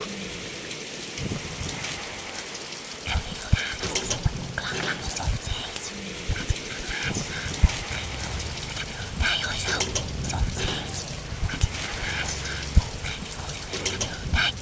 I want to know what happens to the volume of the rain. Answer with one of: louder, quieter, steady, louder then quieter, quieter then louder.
steady.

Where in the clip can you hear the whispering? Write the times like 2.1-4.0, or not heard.
3.0-14.5.